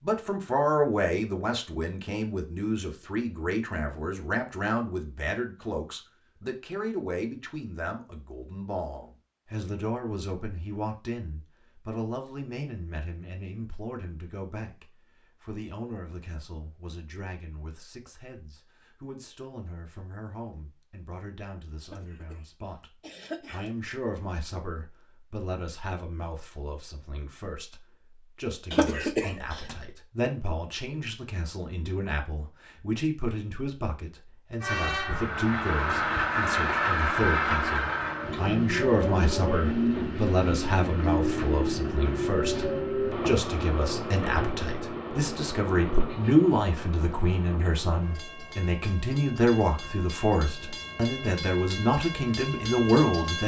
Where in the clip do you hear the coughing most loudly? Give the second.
29 s.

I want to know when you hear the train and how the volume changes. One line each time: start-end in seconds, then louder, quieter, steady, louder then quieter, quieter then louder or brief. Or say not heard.
34.6-53.4 quieter.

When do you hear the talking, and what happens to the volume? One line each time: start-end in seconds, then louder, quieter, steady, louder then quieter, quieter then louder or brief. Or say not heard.
0.0-53.4 quieter then louder.